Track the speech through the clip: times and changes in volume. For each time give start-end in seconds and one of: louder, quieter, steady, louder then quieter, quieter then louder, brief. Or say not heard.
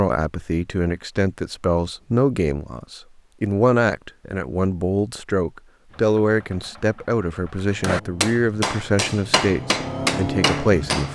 0.0-11.1 steady.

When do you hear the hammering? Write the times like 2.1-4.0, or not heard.
7.8-11.1.